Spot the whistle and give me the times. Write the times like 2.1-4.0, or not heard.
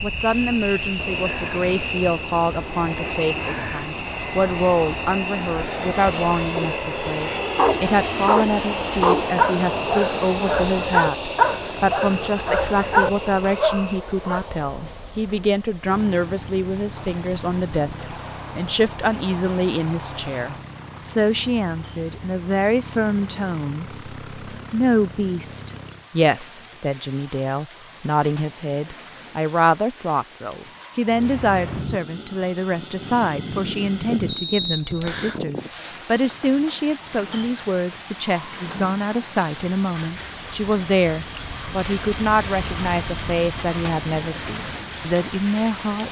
34.2-35.4.